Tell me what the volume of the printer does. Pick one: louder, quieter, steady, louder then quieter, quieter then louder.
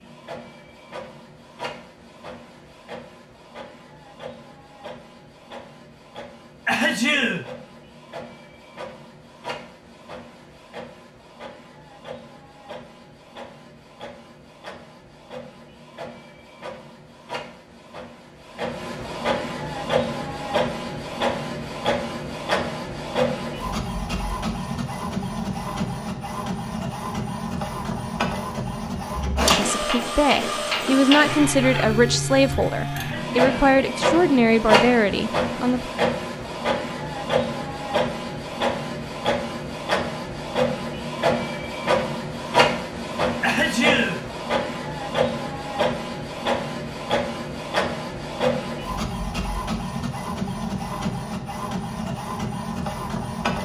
louder.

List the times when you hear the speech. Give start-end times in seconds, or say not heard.
29.5-35.9.